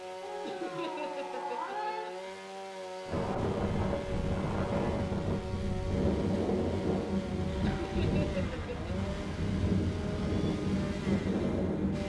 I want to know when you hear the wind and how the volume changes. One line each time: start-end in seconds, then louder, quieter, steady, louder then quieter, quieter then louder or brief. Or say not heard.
3.0-12.0 steady.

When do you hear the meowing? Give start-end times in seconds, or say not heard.
0.2-2.0, 9.9-10.6.